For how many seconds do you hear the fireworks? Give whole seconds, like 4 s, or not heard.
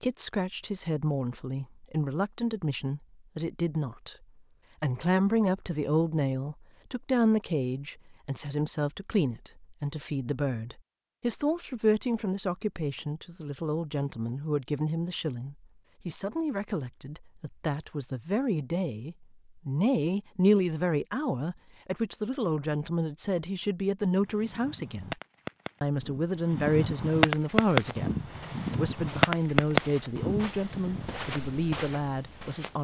7 s.